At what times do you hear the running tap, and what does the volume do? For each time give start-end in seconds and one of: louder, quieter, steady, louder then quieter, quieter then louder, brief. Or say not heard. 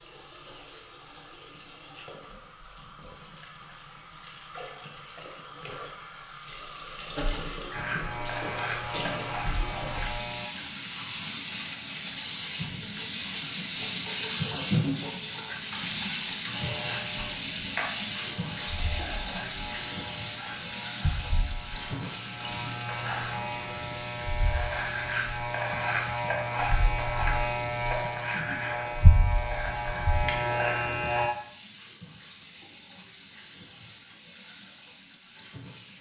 0.0-35.9 louder then quieter.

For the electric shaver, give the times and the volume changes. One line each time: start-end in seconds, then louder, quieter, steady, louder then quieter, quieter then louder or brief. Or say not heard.
7.7-10.4 brief
16.5-31.3 louder.